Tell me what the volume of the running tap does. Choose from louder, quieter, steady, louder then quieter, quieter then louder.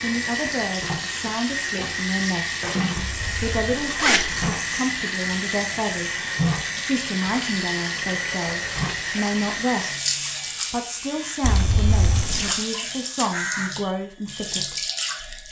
steady.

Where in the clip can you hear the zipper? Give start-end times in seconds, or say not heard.
3.0-4.5, 11.4-12.6.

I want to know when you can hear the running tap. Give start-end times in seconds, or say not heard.
0.0-15.4.